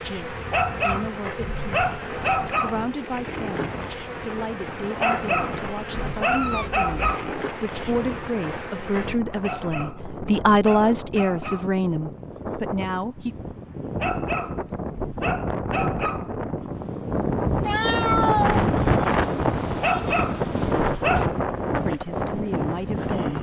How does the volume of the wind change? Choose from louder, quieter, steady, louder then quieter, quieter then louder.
louder.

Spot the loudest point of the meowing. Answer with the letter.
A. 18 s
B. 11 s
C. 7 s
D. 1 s
A.